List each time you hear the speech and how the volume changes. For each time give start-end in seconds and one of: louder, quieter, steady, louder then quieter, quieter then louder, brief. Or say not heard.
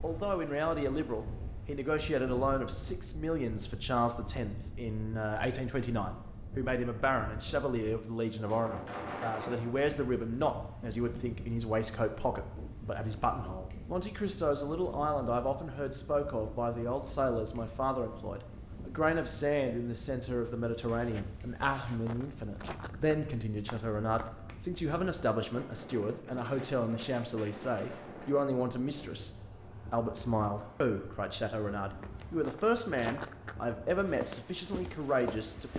0.0-35.7 steady.